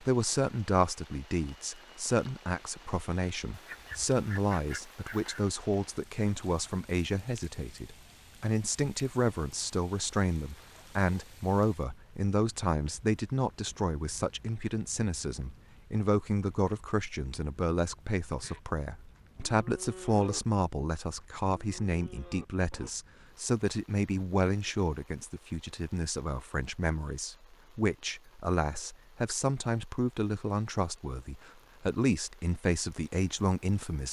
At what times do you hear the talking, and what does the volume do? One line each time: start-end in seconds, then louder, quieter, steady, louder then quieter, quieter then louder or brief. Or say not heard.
0.0-34.0 steady.